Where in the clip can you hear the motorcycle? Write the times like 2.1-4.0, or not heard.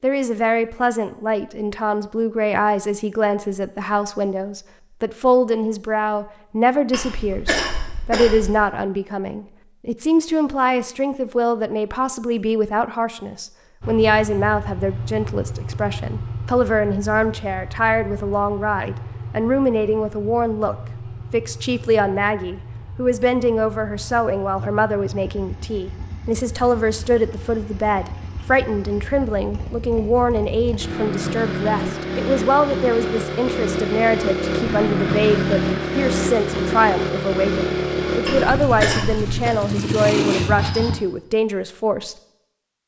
13.8-41.0.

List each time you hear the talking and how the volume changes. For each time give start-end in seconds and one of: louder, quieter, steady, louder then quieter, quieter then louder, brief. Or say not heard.
0.0-42.1 steady.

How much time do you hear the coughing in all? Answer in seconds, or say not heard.
3 s.